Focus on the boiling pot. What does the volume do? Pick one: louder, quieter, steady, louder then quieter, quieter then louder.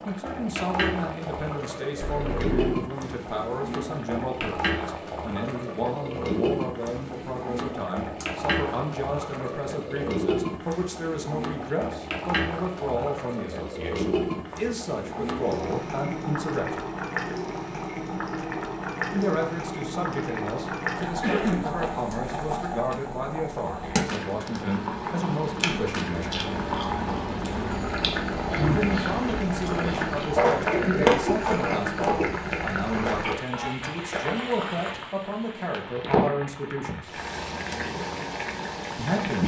steady.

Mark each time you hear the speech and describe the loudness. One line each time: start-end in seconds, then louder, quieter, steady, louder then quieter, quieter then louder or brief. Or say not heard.
0.1-16.9 steady
19.1-26.4 steady
28.7-37.1 steady
39.0-39.4 brief.